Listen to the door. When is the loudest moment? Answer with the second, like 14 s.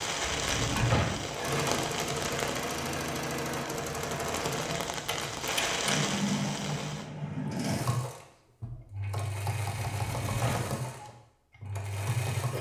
1 s.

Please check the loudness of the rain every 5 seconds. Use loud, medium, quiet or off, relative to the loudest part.
loud, loud, off.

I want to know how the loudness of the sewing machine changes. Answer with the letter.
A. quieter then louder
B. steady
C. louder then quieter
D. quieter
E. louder
B.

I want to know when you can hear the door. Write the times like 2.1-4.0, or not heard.
0.2-1.2, 9.8-10.8.